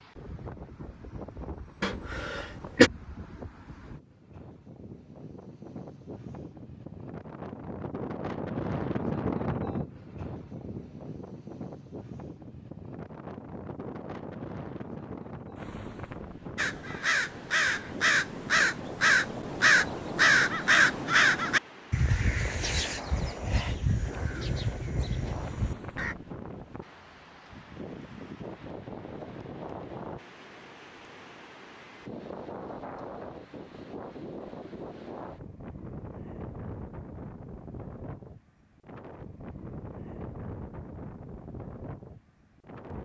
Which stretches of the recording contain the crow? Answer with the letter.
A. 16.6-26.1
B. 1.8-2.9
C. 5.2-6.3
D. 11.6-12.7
A.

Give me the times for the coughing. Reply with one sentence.
You can hear the coughing from 1.8 to 2.9 s.